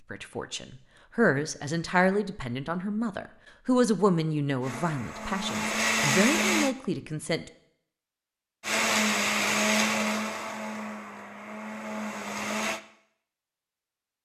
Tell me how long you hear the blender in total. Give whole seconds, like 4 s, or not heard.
6 s.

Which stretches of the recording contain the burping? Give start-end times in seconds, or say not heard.
not heard.